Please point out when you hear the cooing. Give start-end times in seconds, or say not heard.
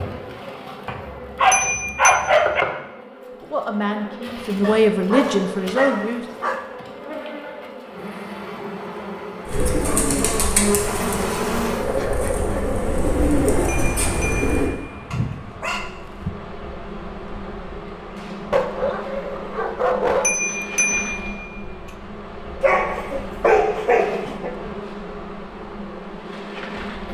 9.4-14.7.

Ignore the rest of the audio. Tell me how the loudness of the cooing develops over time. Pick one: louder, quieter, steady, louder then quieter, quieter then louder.
quieter then louder.